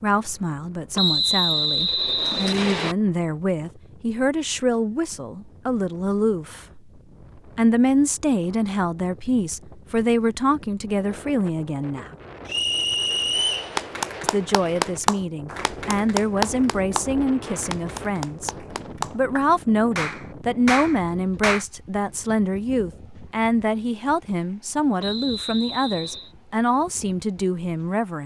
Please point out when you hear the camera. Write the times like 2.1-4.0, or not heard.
not heard.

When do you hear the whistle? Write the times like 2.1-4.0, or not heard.
0.9-3.0, 12.4-13.7, 25.0-26.3.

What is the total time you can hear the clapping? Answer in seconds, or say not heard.
8 s.